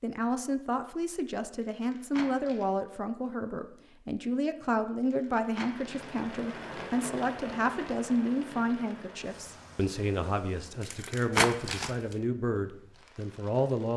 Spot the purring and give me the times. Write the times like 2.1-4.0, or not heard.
not heard.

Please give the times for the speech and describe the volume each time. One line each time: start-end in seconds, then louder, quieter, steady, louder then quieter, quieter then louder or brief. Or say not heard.
0.0-13.9 steady.